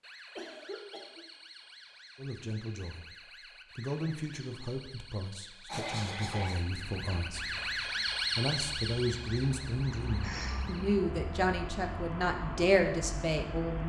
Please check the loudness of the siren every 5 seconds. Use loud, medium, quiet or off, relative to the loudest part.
quiet, loud, medium.